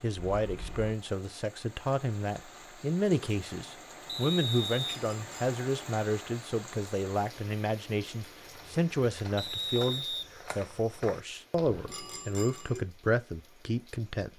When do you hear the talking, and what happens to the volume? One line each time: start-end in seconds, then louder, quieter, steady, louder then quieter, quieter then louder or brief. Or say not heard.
0.0-14.3 steady.